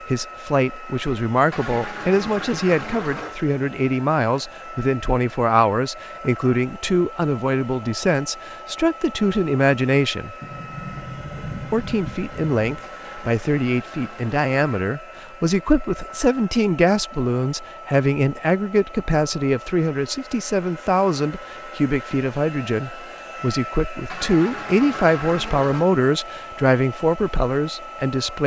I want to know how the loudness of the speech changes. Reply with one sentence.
The loudness of the speech stays about the same.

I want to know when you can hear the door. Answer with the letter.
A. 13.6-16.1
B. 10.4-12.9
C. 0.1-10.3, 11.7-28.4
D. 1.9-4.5
B.